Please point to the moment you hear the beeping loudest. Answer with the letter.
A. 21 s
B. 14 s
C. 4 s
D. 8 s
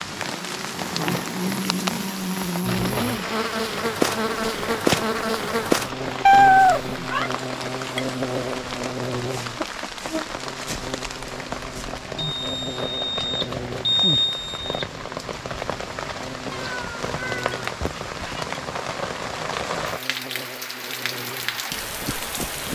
B.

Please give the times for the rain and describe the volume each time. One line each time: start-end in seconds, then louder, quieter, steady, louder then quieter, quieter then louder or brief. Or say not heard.
0.0-22.6 steady.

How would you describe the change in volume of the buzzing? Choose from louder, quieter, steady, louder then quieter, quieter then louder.
quieter.